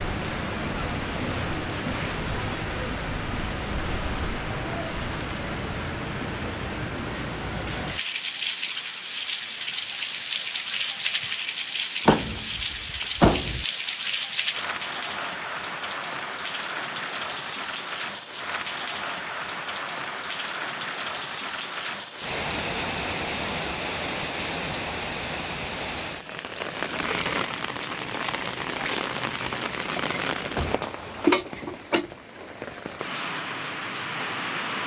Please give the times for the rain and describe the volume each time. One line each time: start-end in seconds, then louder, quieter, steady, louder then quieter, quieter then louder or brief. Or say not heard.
0.0-34.8 steady.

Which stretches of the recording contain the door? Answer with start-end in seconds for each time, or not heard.
12.1-13.7, 29.9-30.9.